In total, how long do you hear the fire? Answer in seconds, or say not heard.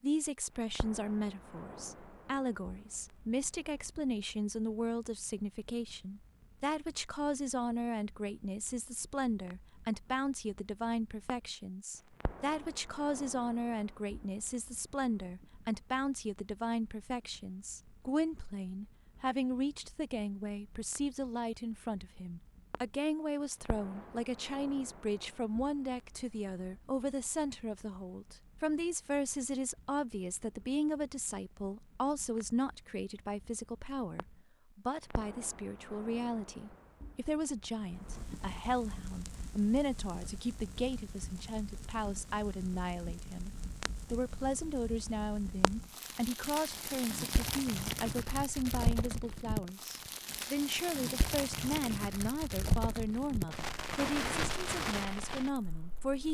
56 s.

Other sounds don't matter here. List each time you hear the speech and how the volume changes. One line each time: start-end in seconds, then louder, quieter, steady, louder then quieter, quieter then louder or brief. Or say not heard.
0.0-56.3 steady.